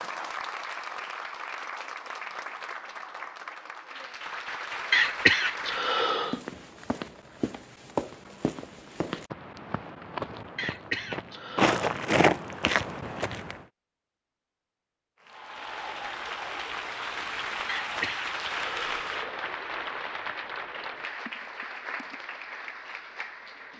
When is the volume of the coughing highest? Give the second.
5 s.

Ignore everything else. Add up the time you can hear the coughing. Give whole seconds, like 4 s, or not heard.
4 s.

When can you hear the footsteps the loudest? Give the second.
12 s.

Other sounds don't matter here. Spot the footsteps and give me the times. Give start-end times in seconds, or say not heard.
6.2-13.6.